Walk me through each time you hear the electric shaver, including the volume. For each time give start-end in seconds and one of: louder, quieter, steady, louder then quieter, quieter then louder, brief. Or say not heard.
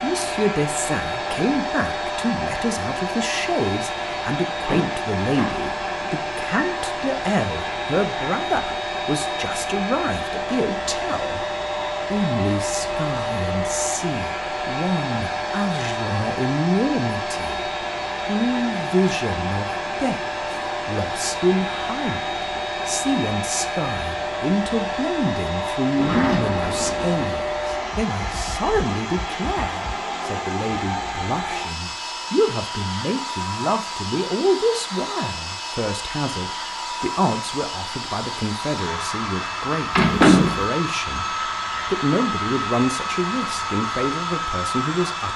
not heard.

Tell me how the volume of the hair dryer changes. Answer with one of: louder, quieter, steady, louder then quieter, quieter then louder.
steady.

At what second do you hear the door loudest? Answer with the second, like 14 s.
40 s.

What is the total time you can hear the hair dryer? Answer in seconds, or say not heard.
45 s.